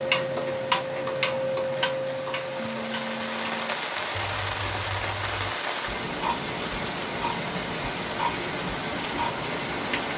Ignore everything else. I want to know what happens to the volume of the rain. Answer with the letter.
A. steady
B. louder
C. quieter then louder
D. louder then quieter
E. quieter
B.